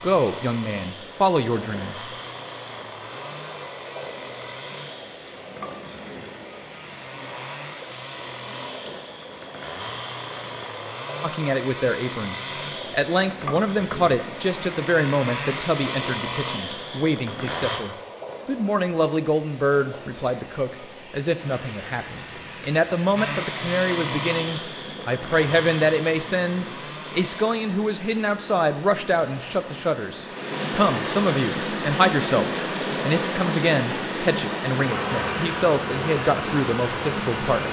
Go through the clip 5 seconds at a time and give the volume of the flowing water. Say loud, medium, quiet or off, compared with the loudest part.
quiet, quiet, quiet, quiet, quiet, quiet, loud, loud.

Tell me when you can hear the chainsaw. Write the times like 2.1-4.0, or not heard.
0.0-17.8, 23.1-27.4.